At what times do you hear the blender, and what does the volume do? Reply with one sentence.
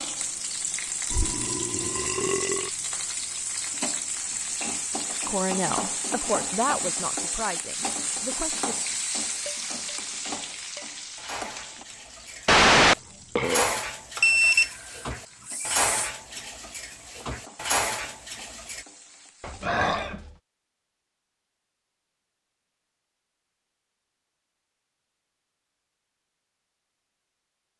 You can't hear the blender here.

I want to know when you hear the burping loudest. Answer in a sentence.
The volume of the burping peaks at 13 seconds.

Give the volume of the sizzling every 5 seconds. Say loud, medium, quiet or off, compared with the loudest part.
loud, loud, medium, quiet, off, off.